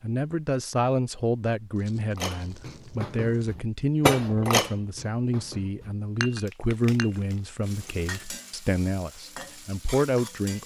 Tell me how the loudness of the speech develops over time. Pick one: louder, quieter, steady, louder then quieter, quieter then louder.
steady.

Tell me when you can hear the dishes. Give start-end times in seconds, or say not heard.
2.1-7.2.